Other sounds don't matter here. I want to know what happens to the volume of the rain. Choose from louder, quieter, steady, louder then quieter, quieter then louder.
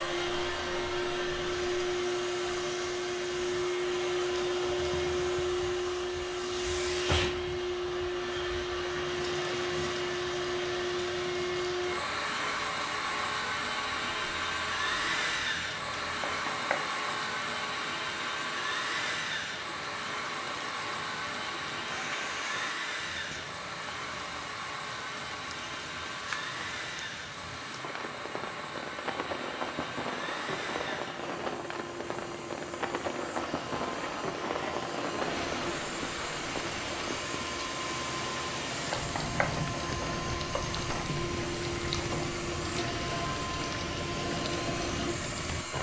louder.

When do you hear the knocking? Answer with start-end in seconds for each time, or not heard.
16.2-16.9, 38.9-40.7.